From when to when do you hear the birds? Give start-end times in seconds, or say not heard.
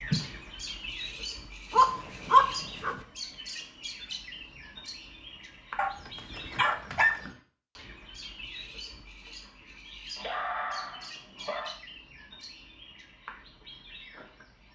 0.0-14.7.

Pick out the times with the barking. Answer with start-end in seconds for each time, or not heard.
1.7-3.0, 5.8-7.2, 10.2-11.8.